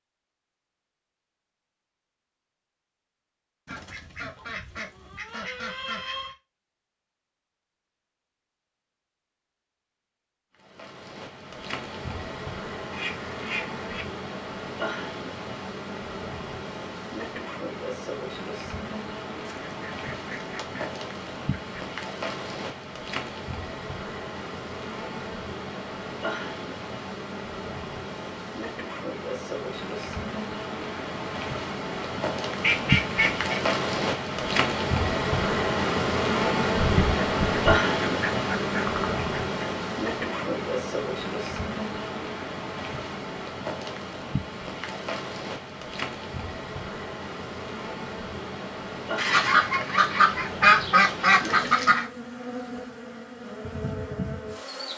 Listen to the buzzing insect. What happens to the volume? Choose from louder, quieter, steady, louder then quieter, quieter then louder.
louder then quieter.